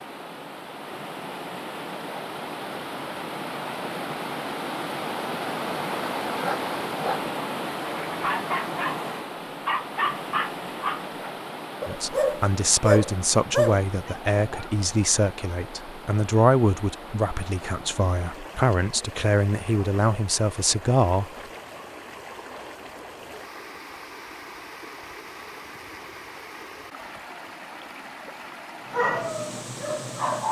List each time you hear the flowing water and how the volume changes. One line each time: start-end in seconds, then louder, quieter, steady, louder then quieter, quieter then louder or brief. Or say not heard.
0.0-30.4 quieter.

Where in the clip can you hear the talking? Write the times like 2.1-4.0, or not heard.
11.8-21.3.